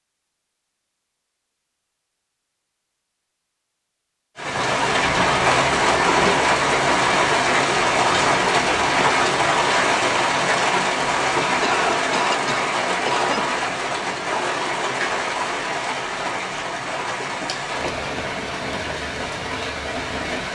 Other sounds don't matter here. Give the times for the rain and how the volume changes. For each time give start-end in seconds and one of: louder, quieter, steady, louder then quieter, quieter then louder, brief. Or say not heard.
4.3-20.4 quieter.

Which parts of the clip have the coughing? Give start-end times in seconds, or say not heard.
11.6-13.4.